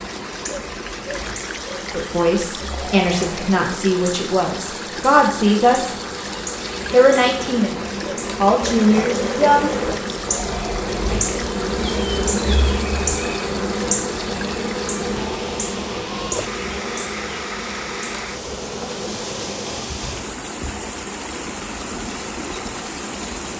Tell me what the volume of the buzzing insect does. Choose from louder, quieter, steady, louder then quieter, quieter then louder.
louder then quieter.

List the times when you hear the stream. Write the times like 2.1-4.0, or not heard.
0.0-23.5.